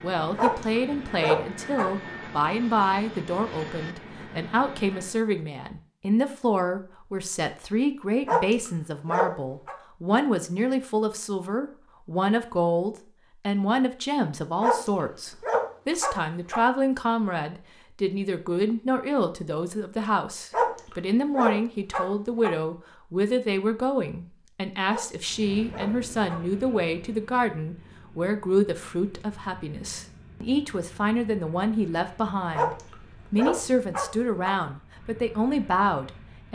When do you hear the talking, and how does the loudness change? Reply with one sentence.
You can hear the talking from 0.0 to 36.4 s, at a steady volume.